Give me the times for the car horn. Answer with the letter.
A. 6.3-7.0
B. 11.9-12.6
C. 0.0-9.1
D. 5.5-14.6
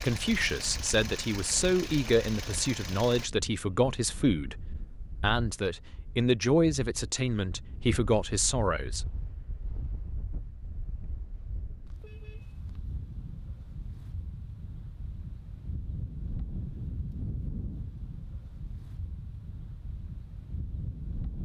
B.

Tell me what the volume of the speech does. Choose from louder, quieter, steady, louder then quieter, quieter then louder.
steady.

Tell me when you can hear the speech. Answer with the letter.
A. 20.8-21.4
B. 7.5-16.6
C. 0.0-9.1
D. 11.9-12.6
C.